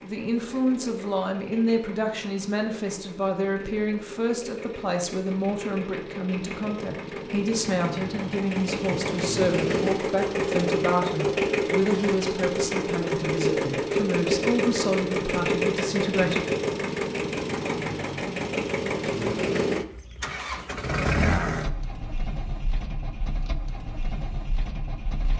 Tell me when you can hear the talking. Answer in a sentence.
You can hear the talking from 0.0 to 16.4 s.